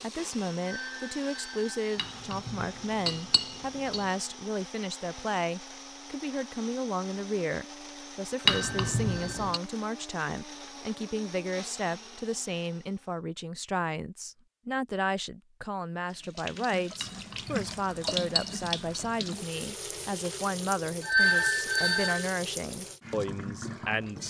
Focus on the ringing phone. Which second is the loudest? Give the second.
21 s.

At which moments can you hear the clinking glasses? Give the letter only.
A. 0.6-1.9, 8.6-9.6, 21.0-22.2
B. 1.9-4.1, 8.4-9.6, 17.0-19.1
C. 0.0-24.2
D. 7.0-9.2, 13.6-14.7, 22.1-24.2
B.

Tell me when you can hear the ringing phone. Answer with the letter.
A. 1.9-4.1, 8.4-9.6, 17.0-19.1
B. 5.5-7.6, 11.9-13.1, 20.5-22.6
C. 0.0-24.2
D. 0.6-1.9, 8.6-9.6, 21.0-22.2
D.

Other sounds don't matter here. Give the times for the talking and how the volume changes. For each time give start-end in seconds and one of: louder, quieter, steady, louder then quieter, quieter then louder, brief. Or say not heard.
0.0-24.2 steady.